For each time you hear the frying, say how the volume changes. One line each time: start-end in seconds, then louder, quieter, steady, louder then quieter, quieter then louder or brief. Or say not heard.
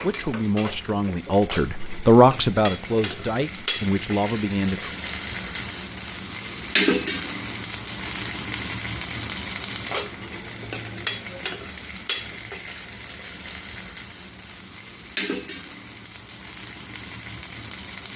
0.0-18.1 louder then quieter.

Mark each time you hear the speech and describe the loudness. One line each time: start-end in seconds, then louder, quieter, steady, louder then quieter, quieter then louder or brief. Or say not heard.
0.0-4.9 louder then quieter.